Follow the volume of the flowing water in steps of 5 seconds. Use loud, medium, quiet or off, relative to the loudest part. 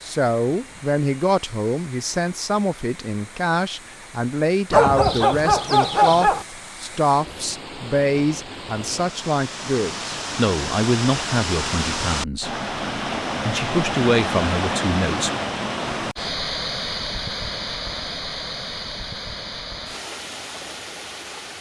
quiet, medium, loud, loud, medium.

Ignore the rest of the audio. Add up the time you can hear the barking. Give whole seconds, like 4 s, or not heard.
2 s.